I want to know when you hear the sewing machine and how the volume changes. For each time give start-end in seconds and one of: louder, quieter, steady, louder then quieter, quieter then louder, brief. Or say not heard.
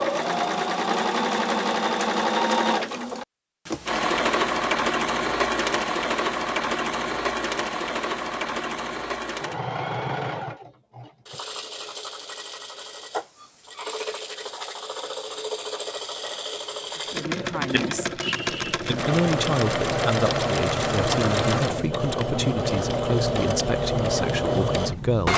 0.0-25.3 quieter then louder.